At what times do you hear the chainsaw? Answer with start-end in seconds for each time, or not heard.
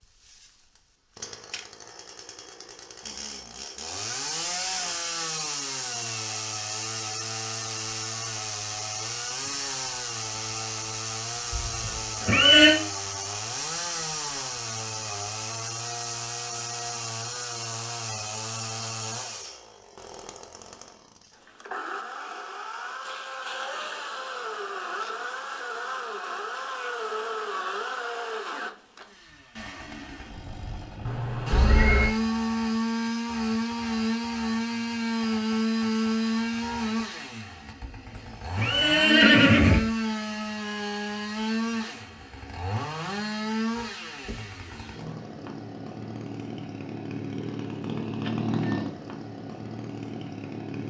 0.2-50.8.